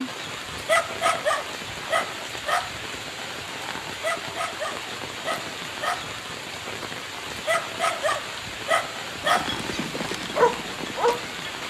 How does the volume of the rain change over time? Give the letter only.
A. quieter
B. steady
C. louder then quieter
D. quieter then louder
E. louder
B.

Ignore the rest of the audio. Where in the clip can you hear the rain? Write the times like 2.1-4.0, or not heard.
0.0-11.6.